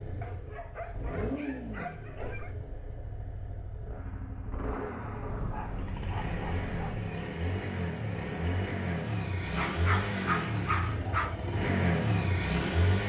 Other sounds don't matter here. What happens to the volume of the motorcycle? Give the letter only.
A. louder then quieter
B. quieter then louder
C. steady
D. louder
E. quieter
D.